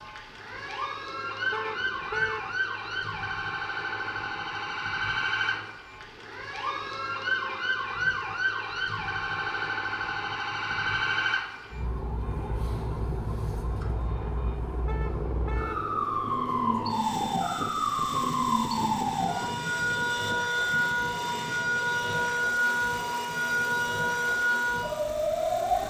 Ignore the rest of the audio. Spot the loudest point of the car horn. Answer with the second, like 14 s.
2 s.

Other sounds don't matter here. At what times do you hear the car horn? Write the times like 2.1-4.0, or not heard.
1.5-2.5, 14.8-15.8.